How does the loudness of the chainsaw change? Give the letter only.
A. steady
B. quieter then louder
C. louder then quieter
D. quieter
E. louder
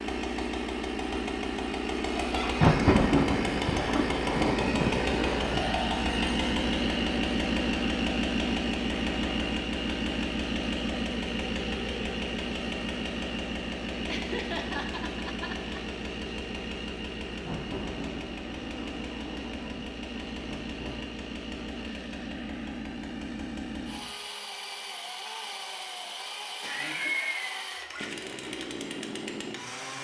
D.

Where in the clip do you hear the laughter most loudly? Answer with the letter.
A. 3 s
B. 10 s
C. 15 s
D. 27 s
D.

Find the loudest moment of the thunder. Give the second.
3 s.